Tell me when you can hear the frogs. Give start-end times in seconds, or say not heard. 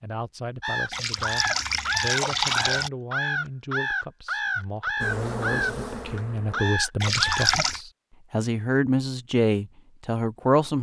not heard.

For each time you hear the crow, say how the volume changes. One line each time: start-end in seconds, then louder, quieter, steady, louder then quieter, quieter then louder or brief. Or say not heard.
0.6-7.5 steady.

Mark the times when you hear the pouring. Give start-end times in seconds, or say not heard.
0.9-2.9, 7.0-7.8.